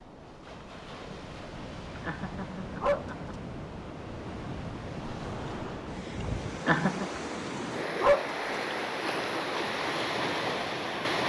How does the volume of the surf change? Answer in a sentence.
The loudness of the surf goes up.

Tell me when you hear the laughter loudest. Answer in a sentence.
The loudest moment of the laughter is at 7 seconds.